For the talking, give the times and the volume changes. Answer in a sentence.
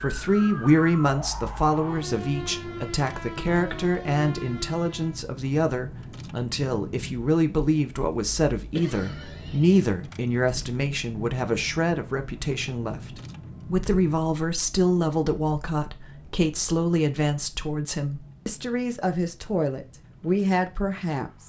The talking can be heard from 0.0 to 21.4 s, at a steady volume.